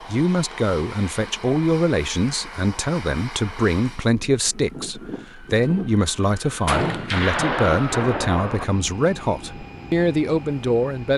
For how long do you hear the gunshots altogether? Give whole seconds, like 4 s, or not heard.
2 s.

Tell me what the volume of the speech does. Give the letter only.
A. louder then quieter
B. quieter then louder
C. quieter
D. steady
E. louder
D.